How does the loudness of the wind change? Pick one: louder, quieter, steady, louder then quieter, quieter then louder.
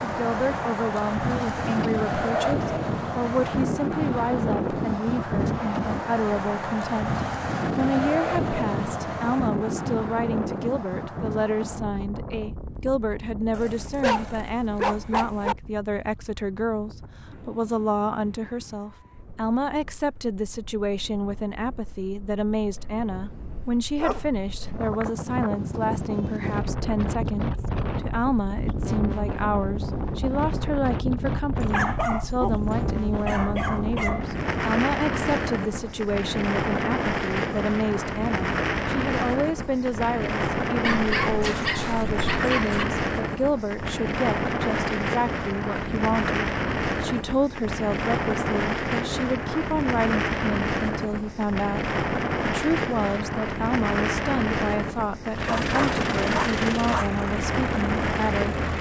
quieter then louder.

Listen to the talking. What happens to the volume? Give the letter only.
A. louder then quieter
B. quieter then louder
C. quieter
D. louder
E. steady
E.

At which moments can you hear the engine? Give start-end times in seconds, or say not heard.
55.3-58.7.